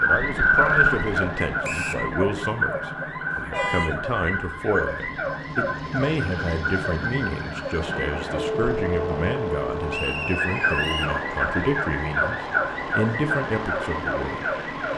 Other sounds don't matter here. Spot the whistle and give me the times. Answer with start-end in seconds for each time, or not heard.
1.6-2.0, 9.9-11.2.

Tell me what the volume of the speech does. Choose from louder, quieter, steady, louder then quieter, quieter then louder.
steady.